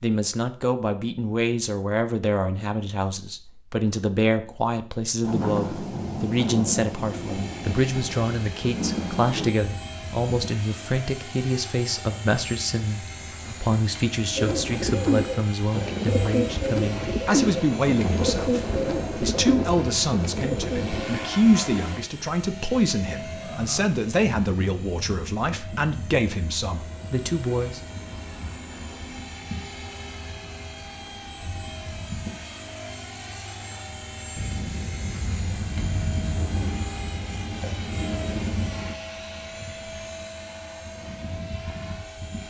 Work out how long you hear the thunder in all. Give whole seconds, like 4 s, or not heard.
13 s.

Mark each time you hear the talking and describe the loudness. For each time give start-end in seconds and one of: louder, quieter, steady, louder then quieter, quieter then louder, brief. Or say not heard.
0.0-27.8 steady.